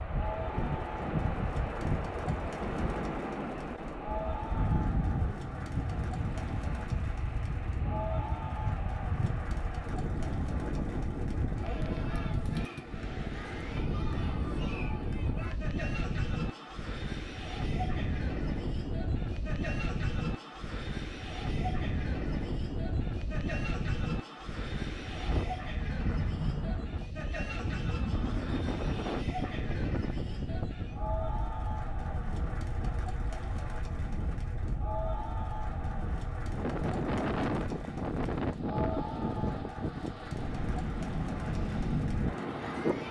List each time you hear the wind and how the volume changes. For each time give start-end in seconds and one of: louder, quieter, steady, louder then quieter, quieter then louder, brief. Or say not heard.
0.0-43.0 steady.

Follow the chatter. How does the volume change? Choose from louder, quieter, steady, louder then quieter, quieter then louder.
steady.